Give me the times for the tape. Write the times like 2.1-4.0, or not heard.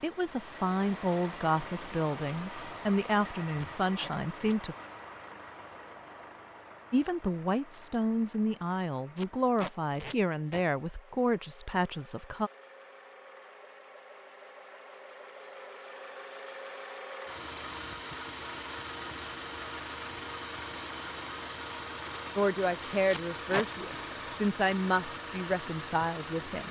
3.5-4.5, 9.2-10.7, 23.1-24.0.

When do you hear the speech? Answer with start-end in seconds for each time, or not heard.
0.0-4.8, 6.9-12.5, 22.4-26.6.